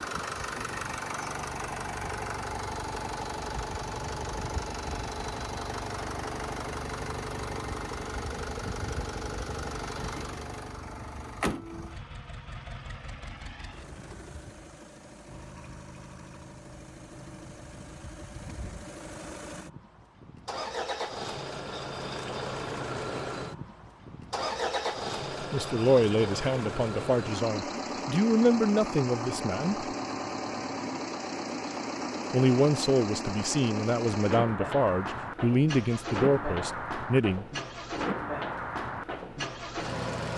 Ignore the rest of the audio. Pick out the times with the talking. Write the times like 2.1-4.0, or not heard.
25.5-29.9, 32.3-37.5.